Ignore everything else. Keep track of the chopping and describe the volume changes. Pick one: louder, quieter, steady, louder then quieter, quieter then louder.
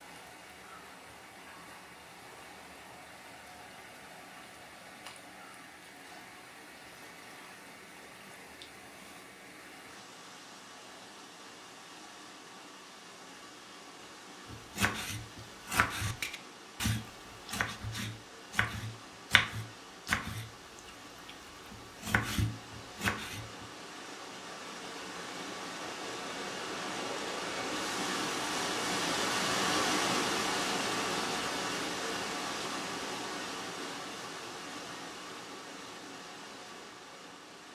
steady.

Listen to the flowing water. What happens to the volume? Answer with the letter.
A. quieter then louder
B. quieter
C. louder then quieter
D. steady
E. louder
E.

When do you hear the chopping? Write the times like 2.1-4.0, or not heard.
14.4-23.6.